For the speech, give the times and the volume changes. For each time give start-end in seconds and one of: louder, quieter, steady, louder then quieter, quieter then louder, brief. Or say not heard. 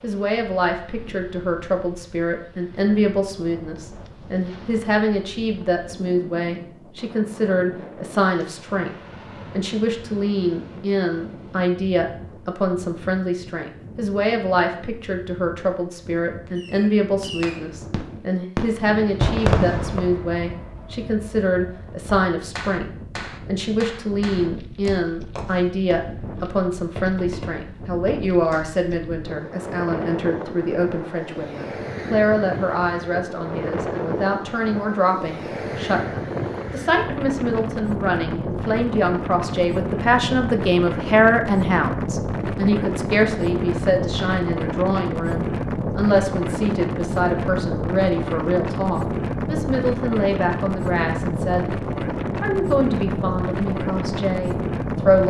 0.0-55.2 steady.